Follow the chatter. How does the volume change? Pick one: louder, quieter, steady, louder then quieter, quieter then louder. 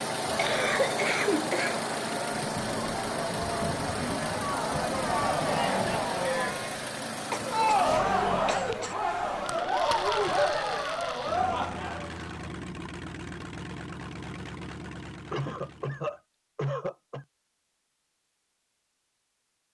louder.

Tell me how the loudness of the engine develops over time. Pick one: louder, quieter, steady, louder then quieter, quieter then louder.
quieter.